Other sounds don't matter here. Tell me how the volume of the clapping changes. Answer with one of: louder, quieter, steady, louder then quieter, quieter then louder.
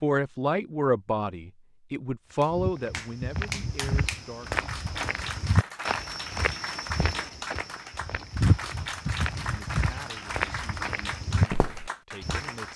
steady.